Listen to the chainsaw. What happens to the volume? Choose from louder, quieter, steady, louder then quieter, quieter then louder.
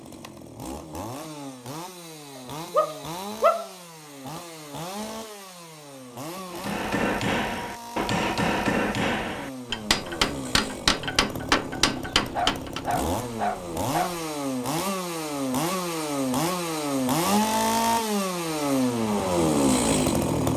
louder.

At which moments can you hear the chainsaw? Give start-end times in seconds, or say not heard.
0.0-20.5.